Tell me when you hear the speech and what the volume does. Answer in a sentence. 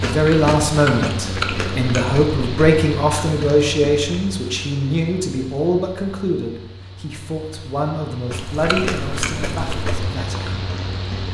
The speech can be heard from 0.0 to 10.6 s, getting quieter.